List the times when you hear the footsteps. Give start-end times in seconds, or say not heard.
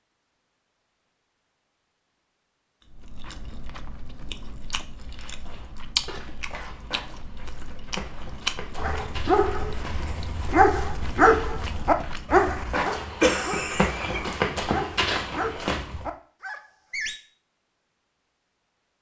5.0-16.1.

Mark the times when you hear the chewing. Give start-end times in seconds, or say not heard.
2.9-12.4.